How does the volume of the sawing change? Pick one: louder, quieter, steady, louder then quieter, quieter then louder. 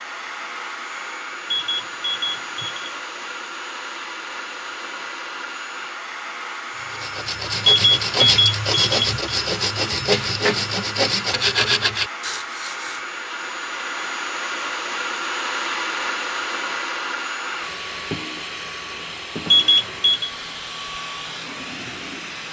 steady.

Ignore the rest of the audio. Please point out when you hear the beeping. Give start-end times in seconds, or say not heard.
1.5-2.9, 7.7-9.1, 19.5-20.3.